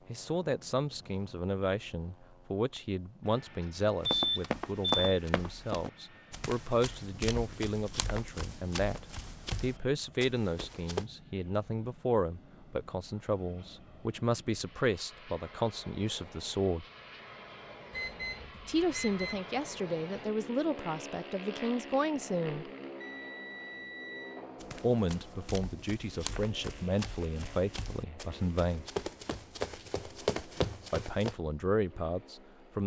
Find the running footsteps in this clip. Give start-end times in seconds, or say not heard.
4.0-11.1, 24.6-31.4.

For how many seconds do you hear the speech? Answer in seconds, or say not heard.
27 s.